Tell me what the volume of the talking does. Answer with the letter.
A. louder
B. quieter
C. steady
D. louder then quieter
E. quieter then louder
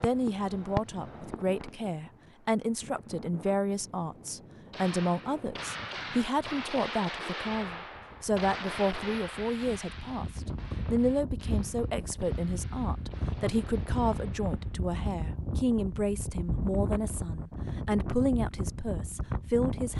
C.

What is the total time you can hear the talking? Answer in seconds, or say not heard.
20 s.